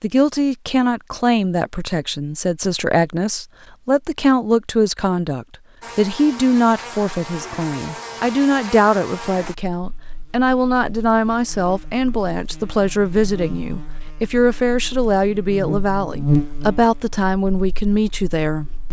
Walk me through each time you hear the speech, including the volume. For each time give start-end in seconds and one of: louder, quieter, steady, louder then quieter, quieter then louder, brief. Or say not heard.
0.0-18.6 steady.